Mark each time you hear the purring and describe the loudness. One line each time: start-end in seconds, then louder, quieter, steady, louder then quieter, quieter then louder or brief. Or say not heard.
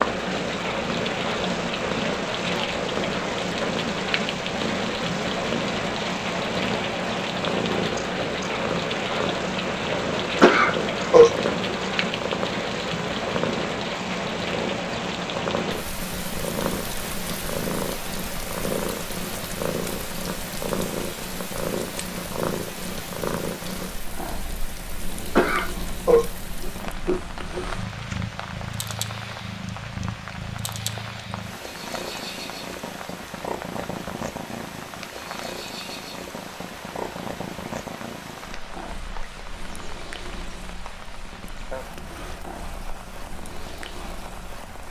0.0-44.8 quieter.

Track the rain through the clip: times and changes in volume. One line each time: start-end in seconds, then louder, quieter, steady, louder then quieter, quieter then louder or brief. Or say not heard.
0.0-44.8 quieter.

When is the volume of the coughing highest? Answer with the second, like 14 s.
11 s.